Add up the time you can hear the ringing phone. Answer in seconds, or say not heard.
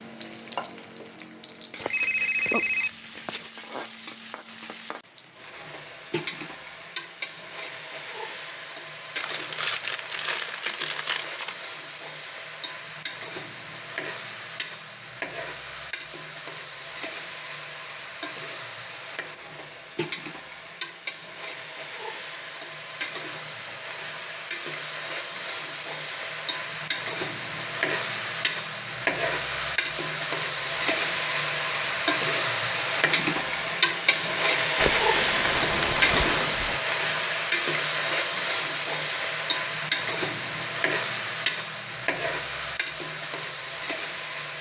2 s.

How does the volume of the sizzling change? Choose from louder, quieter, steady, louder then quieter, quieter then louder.
louder.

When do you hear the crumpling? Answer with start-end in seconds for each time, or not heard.
9.2-11.6, 34.8-36.8.